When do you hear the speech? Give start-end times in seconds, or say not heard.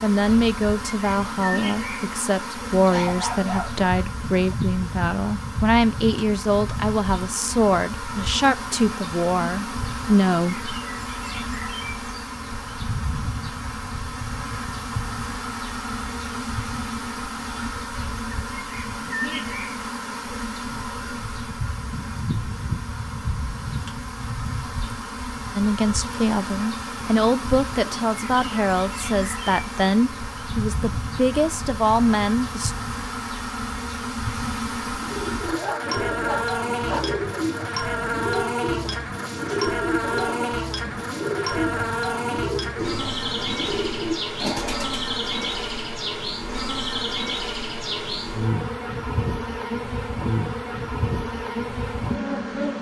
0.0-10.7, 25.6-32.8.